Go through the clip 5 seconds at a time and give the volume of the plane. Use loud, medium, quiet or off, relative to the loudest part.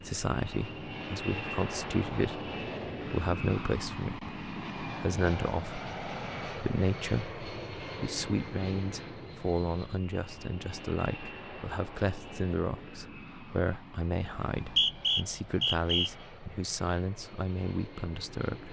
loud, loud, medium, medium.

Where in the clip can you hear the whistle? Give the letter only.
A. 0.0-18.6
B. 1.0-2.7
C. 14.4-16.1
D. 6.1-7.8
C.